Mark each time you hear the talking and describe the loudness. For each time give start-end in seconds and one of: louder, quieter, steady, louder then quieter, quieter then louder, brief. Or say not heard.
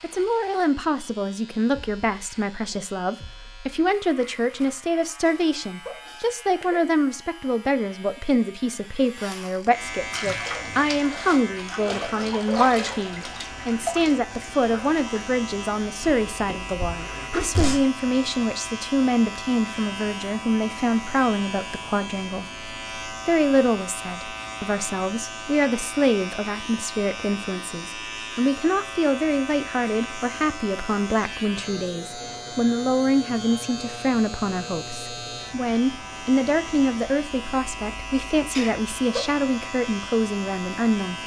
0.0-41.2 steady.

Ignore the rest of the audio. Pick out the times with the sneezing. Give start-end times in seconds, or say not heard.
5.2-6.8, 16.0-17.9, 38.5-39.2.